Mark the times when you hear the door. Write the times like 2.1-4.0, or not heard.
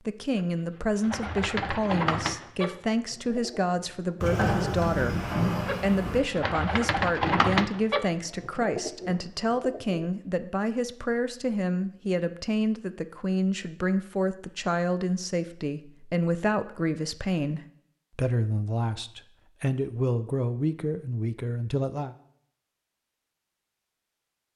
4.2-6.2.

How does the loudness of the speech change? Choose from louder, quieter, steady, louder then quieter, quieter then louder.
steady.